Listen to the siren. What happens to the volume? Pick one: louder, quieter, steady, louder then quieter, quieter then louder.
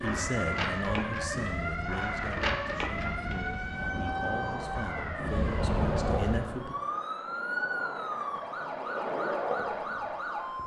steady.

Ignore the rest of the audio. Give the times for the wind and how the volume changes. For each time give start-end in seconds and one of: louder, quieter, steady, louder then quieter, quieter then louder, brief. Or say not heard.
0.0-6.7 louder.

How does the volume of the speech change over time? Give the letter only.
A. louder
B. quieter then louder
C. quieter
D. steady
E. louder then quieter
B.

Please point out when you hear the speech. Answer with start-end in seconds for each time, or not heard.
0.0-6.8.